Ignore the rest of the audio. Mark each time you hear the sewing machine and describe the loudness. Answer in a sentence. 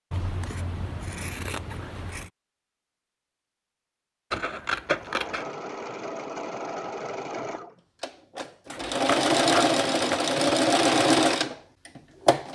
You can hear the sewing machine from 4.8 to 12.5 s, getting louder.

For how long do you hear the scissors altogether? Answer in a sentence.
The scissors can be heard for 5 seconds in total.